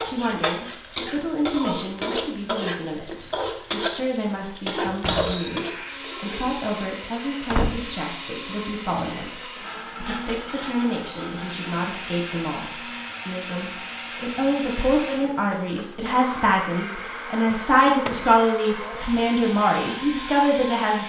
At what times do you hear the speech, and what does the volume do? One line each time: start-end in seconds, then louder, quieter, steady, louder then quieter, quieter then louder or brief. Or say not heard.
0.0-21.0 louder.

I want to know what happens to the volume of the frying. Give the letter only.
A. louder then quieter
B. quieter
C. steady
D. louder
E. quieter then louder
C.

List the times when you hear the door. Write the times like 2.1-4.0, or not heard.
4.8-5.4, 7.0-8.1, 17.5-18.3.